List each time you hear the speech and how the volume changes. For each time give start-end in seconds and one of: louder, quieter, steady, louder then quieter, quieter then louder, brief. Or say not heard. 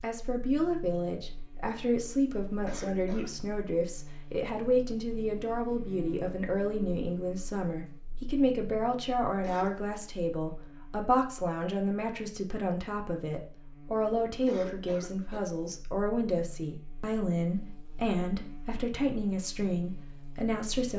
0.0-20.9 steady.